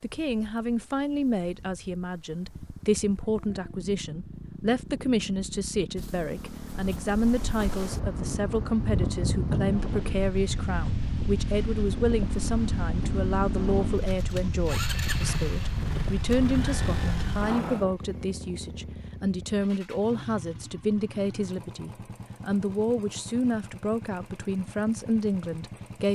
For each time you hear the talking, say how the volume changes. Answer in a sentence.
You can hear the talking from 0.0 to 26.0 s, at a steady volume.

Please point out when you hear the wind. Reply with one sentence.
The wind can be heard from 0.0 to 18.0 s.